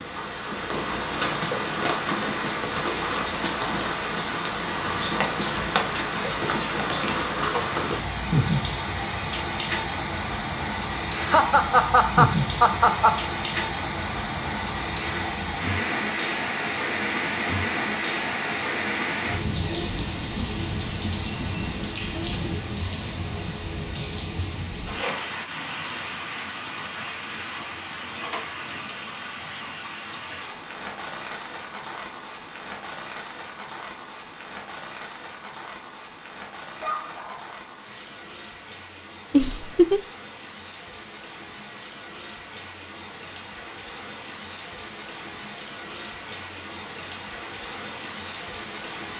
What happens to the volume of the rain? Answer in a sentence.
The volume of the rain goes down.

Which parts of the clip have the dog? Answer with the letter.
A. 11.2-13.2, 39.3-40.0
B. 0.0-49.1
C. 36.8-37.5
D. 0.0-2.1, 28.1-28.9
C.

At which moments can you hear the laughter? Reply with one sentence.
You can hear the laughter from 11.2 to 13.2 s and from 39.3 to 40.0 s.